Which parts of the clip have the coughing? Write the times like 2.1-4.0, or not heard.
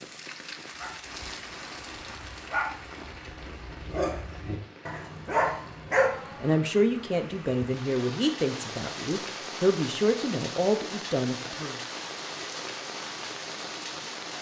not heard.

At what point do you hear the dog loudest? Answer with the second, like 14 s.
6 s.